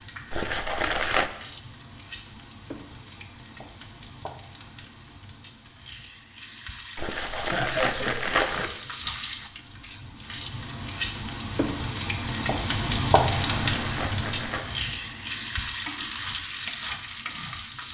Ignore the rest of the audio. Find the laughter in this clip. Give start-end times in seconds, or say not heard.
7.3-8.4.